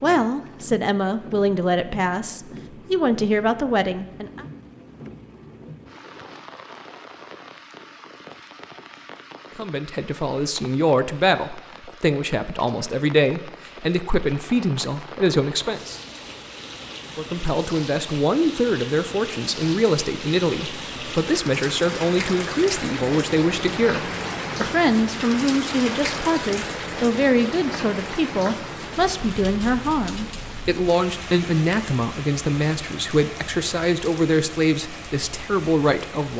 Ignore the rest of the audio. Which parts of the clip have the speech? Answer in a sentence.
The speech can be heard from 0.0 to 4.5 s, from 9.6 to 16.0 s and from 17.1 to 36.3 s.